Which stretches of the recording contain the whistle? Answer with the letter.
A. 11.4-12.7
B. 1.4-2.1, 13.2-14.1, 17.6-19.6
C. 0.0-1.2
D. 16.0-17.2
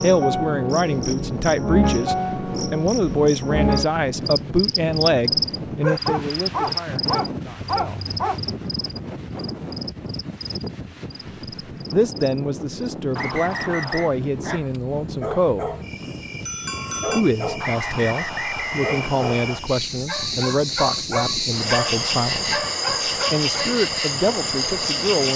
B.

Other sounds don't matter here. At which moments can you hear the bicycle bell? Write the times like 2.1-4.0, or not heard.
16.0-17.2.